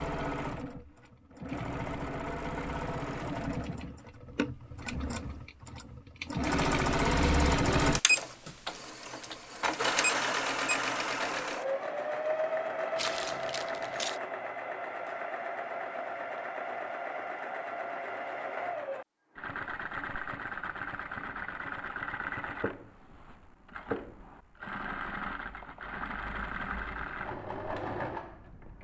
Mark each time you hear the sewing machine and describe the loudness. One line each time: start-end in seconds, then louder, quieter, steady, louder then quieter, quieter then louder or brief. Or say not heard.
0.0-28.7 louder then quieter.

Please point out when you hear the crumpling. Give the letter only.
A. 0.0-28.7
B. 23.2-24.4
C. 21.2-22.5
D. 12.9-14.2
D.